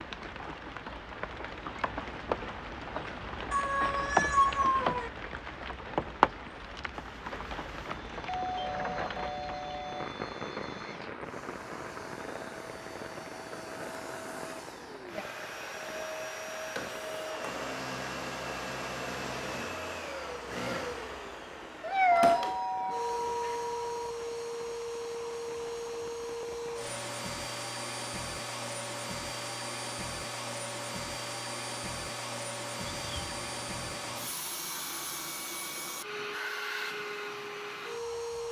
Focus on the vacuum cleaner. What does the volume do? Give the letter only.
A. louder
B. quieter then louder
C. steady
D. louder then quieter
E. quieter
A.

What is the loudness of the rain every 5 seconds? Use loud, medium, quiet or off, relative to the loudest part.
loud, loud, medium, quiet, quiet, quiet, off, off.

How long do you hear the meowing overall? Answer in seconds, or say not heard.
4 s.